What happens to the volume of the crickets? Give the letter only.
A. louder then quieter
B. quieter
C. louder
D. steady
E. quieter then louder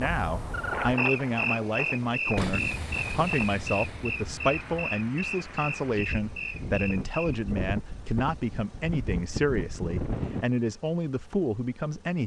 B.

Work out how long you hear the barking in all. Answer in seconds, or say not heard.
not heard.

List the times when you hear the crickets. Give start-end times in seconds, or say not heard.
0.0-7.5.